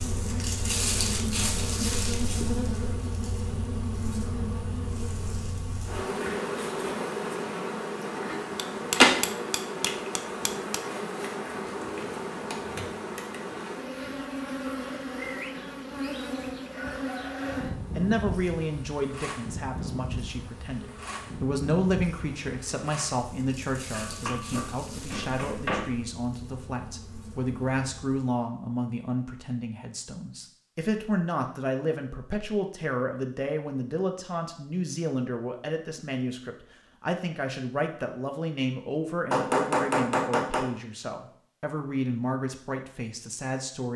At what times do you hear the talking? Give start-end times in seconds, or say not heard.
17.9-43.9.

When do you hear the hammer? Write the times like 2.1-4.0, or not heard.
8.6-10.8, 23.9-25.9, 39.3-40.8.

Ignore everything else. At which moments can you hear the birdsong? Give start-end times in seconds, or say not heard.
not heard.